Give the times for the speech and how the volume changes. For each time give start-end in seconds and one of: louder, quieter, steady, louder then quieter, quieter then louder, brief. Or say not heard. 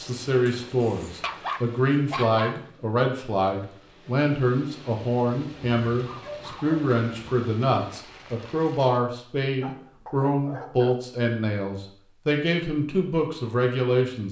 0.0-14.2 steady.